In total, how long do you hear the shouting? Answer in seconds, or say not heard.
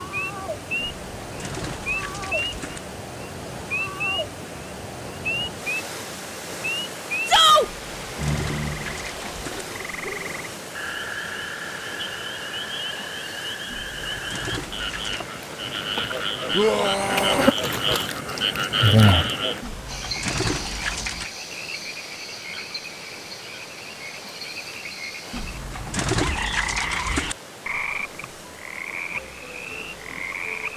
3 s.